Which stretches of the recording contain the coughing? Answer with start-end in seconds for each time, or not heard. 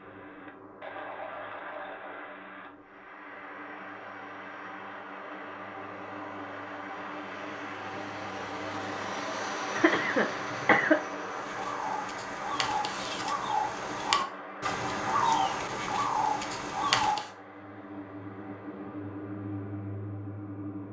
9.8-11.0.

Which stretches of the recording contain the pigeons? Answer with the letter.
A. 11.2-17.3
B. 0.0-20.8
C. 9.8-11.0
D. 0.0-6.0
A.